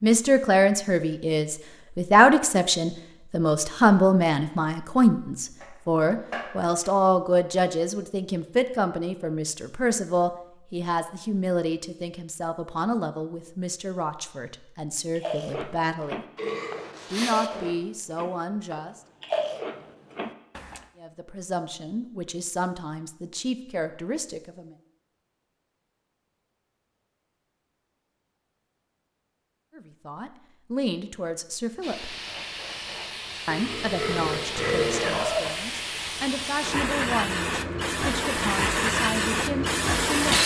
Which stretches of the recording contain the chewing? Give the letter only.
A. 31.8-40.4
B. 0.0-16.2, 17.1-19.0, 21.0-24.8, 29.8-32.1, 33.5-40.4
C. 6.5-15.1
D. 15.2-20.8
D.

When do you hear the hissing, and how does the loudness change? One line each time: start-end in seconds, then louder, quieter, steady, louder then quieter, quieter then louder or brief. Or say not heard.
31.8-40.4 louder.